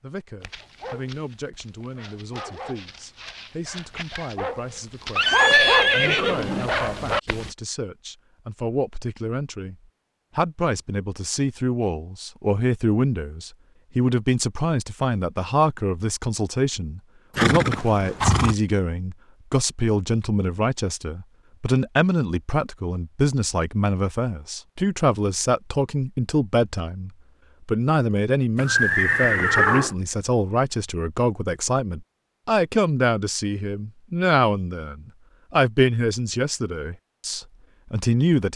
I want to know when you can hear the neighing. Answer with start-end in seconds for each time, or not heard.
5.2-6.7, 17.4-18.6, 28.6-29.9.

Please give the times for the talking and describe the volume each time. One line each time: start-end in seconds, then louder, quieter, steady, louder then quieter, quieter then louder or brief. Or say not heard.
0.0-9.8 louder
10.3-38.5 steady.